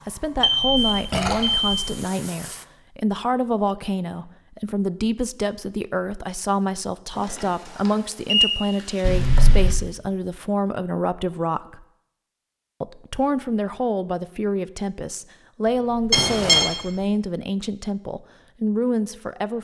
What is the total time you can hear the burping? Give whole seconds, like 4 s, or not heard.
4 s.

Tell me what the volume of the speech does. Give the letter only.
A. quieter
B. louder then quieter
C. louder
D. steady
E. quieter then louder
D.